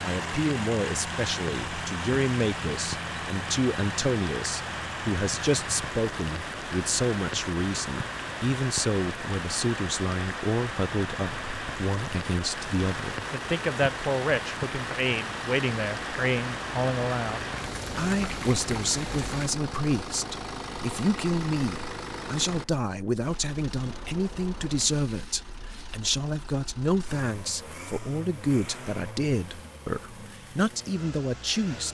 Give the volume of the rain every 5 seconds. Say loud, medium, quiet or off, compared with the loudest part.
loud, loud, loud, loud, off, off, off.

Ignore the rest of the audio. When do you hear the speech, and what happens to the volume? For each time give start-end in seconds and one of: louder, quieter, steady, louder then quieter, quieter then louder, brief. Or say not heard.
0.0-31.9 steady.